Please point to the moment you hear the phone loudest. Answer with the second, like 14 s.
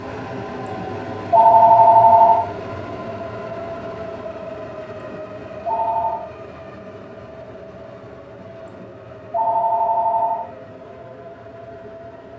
2 s.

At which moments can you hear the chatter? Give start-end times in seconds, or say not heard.
not heard.